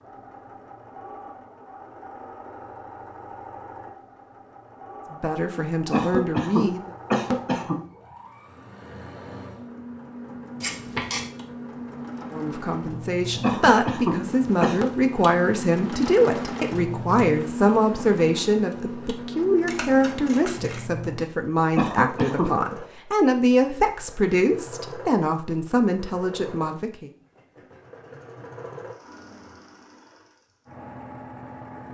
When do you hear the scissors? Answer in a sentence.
You can hear the scissors from 10.6 to 11.2 s and from 19.6 to 20.9 s.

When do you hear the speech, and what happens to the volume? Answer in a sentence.
You can hear the speech briefly from 5.1 to 6.8 s; and from 12.3 to 27.1 s, at a steady volume.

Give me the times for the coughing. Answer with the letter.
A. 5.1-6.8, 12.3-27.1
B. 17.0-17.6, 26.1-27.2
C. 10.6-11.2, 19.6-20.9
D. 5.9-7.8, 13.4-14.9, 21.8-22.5
D.